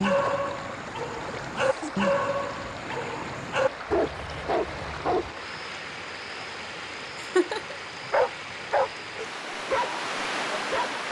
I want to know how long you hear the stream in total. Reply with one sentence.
The stream can be heard for 11 seconds in total.